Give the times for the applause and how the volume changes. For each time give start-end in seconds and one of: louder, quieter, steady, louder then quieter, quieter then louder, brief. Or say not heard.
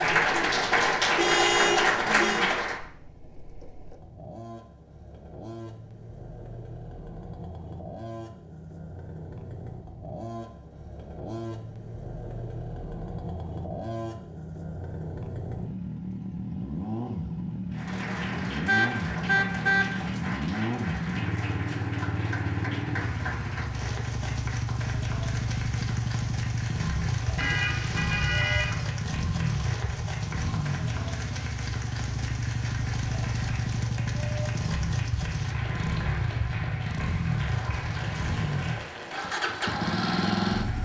0.0-2.8 brief
17.7-40.7 steady.